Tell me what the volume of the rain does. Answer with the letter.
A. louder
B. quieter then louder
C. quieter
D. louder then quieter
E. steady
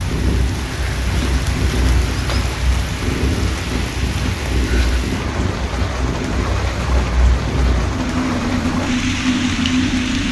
E.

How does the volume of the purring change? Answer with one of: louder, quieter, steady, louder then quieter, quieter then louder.
louder.